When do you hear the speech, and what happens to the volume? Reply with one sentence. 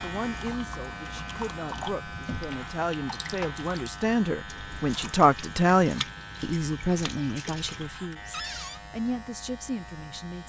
The speech can be heard from 0.0 to 10.4 s, getting louder then quieter.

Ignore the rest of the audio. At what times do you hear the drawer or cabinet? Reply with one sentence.
The drawer or cabinet can be heard from 2.0 to 2.6 s and from 8.3 to 8.8 s.